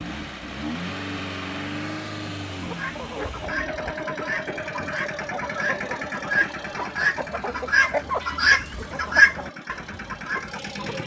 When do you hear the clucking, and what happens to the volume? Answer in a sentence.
You can hear the clucking from 2.6 to 11.0 s, getting louder.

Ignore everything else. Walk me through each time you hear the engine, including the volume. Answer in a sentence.
The engine can be heard from 0.0 to 11.0 s, getting quieter.